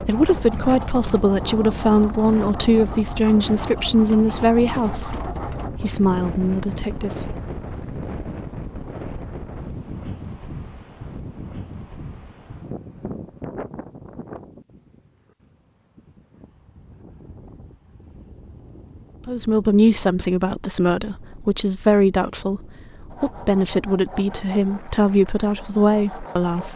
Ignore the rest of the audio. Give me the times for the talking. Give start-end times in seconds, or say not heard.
0.0-7.3, 19.2-26.7.